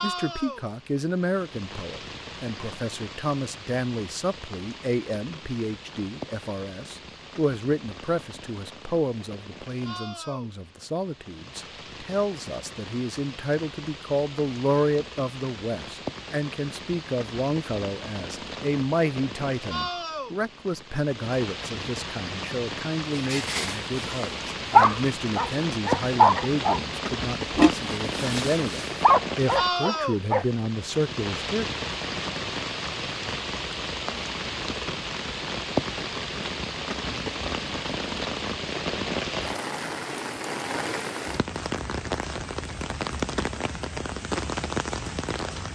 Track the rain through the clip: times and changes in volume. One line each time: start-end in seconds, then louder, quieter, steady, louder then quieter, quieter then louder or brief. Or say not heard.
0.0-45.6 louder.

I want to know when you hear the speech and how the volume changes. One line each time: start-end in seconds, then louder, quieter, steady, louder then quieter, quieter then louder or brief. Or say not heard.
0.0-31.6 steady.